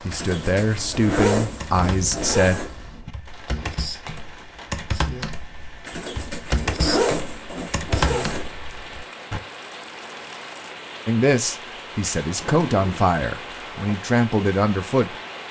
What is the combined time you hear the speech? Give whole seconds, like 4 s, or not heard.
7 s.